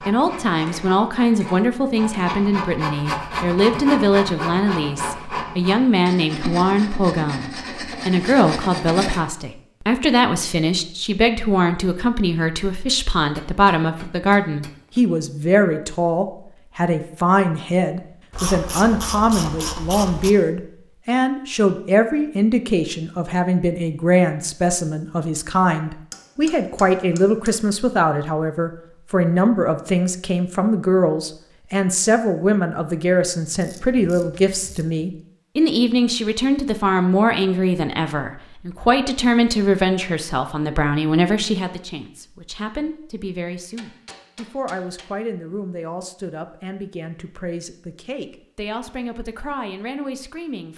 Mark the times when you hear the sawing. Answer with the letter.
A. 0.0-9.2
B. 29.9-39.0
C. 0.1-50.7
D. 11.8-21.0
A.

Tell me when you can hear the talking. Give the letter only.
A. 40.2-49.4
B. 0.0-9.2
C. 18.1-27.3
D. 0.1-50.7
D.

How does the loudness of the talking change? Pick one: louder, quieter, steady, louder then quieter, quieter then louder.
quieter.